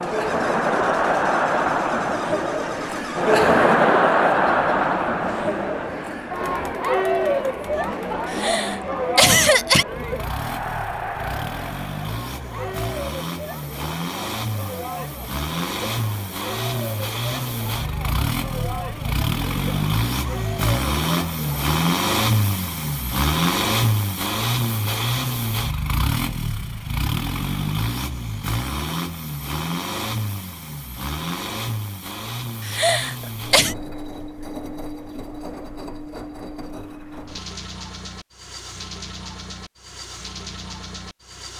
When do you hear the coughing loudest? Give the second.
9 s.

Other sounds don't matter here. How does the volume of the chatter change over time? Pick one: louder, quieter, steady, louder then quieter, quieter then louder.
quieter.